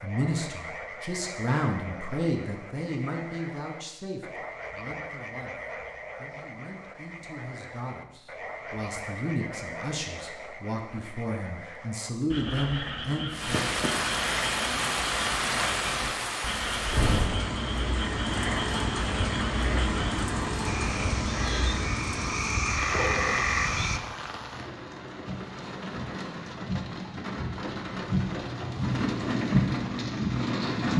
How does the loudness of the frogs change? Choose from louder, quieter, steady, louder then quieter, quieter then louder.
louder.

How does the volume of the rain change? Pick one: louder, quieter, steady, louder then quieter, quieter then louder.
quieter then louder.